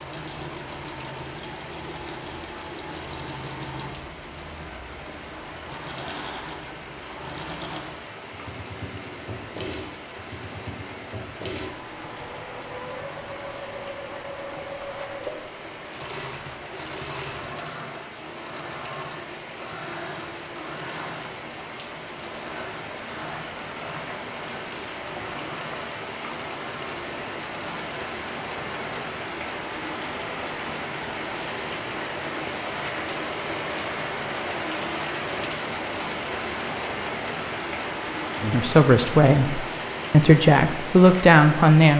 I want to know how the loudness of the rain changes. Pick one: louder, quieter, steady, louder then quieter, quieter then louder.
louder.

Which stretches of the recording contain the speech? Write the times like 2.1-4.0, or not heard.
38.4-41.9.